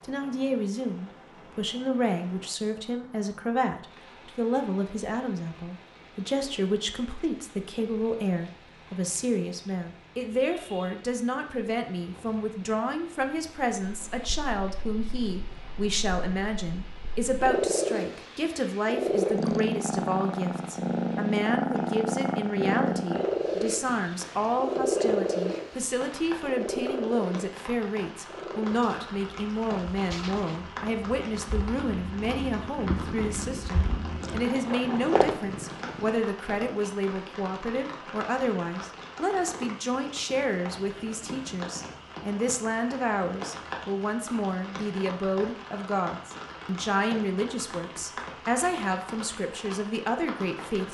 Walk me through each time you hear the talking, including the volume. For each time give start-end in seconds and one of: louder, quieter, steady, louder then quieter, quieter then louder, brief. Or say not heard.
0.0-50.8 steady.